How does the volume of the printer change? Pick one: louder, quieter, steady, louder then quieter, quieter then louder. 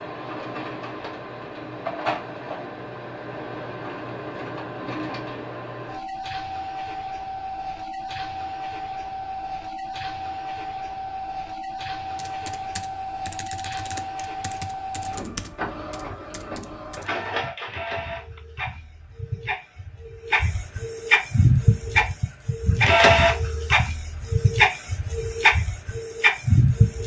louder.